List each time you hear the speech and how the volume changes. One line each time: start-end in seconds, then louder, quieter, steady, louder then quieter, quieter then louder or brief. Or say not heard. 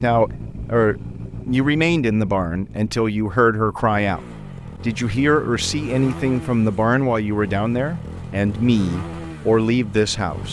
0.0-10.4 steady.